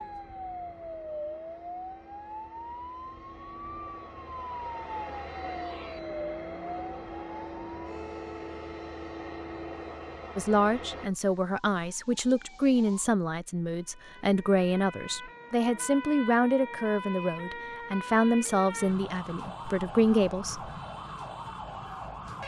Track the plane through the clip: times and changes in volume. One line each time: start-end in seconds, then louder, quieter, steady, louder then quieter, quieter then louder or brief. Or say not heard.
0.0-11.1 louder.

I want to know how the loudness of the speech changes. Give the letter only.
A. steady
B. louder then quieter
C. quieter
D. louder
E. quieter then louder
A.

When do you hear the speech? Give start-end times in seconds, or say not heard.
10.3-20.6.